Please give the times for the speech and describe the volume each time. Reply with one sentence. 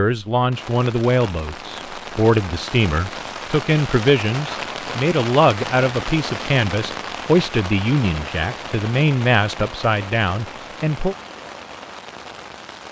The speech can be heard from 0.0 to 11.2 s, at a steady volume.